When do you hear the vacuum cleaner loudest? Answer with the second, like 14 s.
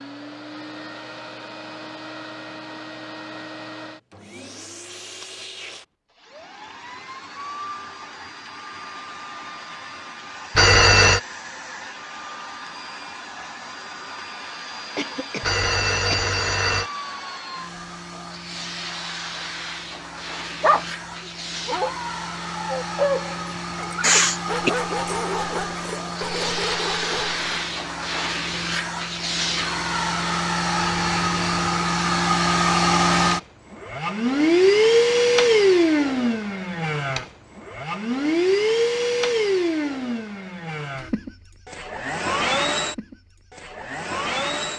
35 s.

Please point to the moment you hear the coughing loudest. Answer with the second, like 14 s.
24 s.